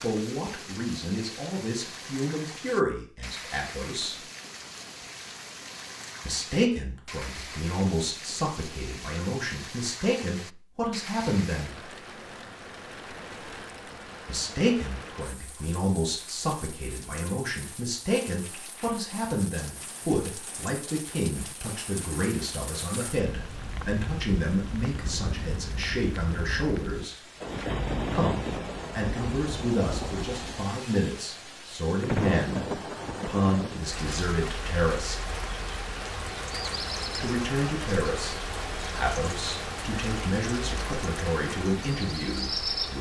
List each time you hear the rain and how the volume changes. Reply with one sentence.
You can hear the rain from 0.0 to 42.9 s, getting louder.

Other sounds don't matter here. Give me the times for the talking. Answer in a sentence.
The talking can be heard from 0.0 to 4.2 s, from 6.2 to 11.8 s, from 14.2 to 27.1 s, from 28.1 to 35.2 s and from 37.1 to 42.9 s.